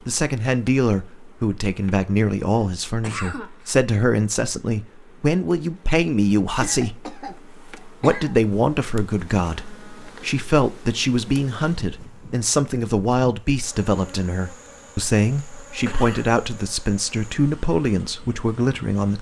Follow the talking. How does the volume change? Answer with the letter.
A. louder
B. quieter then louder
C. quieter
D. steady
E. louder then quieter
D.